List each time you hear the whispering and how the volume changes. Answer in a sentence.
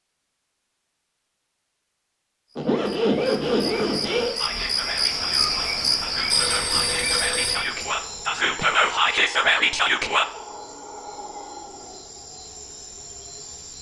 You can hear the whispering from 4.3 to 10.2 s, getting louder.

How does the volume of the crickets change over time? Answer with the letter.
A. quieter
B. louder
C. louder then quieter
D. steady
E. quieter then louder
C.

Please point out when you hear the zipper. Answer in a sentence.
The zipper can be heard from 2.5 to 4.3 s.